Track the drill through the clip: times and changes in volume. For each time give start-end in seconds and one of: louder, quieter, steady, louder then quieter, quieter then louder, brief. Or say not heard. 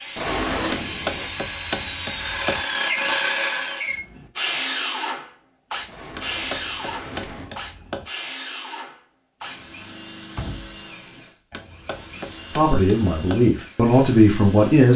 0.0-14.9 quieter.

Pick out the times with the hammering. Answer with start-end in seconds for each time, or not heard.
0.7-2.6, 6.1-8.1, 11.5-13.4.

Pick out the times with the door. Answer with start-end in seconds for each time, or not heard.
0.1-1.3, 5.9-7.5, 10.2-11.2.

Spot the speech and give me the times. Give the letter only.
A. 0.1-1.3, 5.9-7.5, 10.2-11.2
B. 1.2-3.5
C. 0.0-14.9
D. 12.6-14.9
D.